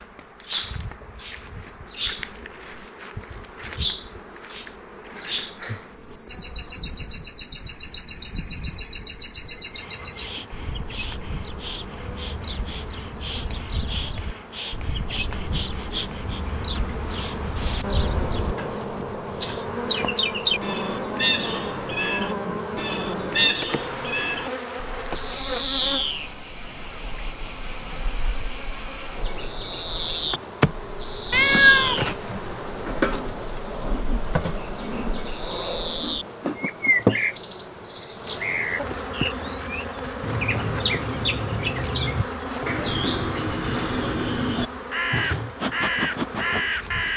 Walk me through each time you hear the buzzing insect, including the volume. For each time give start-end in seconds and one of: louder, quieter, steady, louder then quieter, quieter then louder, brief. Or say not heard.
0.0-47.1 louder.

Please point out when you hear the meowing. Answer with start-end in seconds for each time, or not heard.
31.3-32.1.